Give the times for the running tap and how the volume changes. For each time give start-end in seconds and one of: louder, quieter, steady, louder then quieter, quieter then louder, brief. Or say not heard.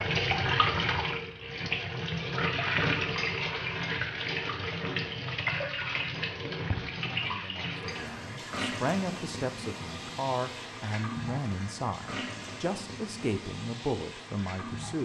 0.0-14.9 quieter.